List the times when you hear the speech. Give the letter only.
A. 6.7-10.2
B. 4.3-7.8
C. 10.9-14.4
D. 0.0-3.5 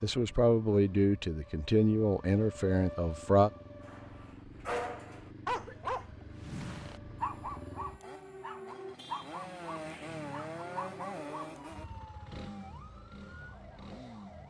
D.